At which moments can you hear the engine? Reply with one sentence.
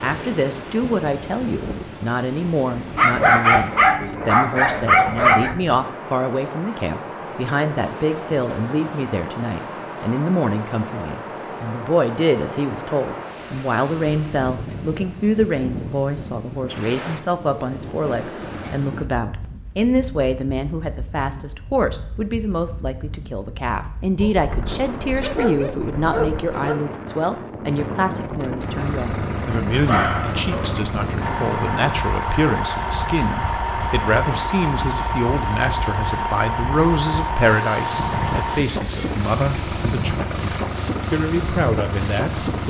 The engine can be heard from 28.6 to 42.6 s.